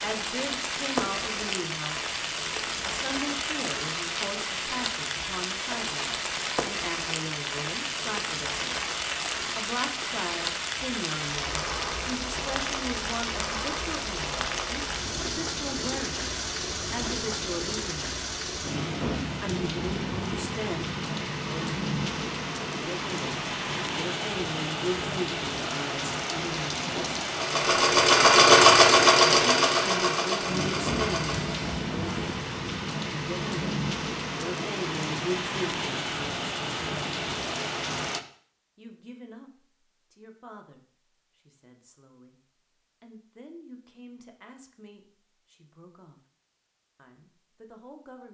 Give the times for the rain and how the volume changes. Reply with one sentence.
You can hear the rain from 0.0 to 38.2 s, at a steady volume.